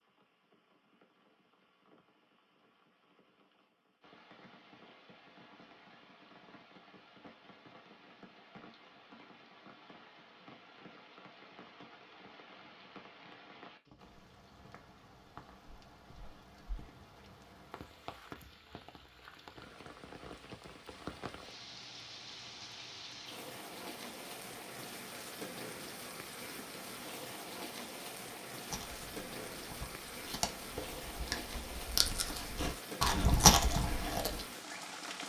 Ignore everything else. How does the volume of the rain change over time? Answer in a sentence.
The loudness of the rain goes up.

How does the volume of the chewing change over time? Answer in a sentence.
The loudness of the chewing goes up.